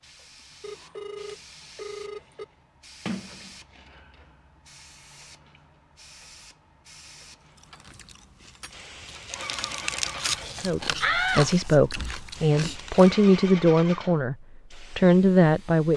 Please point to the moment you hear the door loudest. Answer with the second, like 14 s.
11 s.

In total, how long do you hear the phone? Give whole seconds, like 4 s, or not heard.
2 s.